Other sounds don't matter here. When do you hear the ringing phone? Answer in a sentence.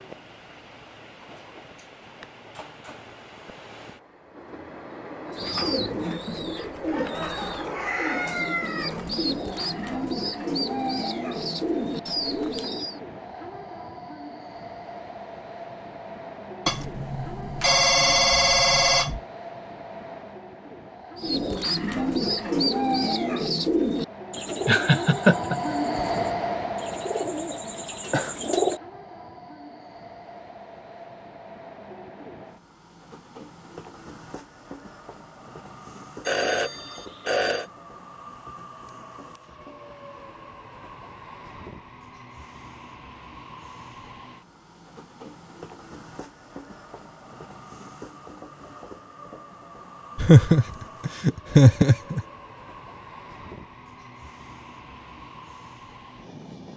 The ringing phone can be heard from 16.6 to 19.2 s and from 36.2 to 37.6 s.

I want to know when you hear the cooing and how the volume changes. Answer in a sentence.
The cooing can be heard from 5.3 to 12.9 s, at a steady volume; and from 21.1 to 28.8 s, getting quieter then louder.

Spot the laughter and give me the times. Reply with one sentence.
The laughter can be heard from 24.6 to 26.0 s and from 50.1 to 52.2 s.